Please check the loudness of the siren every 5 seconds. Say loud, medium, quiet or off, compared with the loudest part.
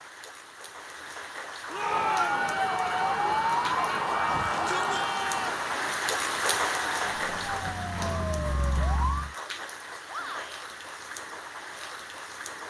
loud, medium, off.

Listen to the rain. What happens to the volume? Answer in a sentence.
The volume of the rain goes up, then down.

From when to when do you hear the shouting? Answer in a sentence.
You can hear the shouting from 1.7 to 2.5 s, from 4.3 to 5.6 s and from 10.1 to 10.7 s.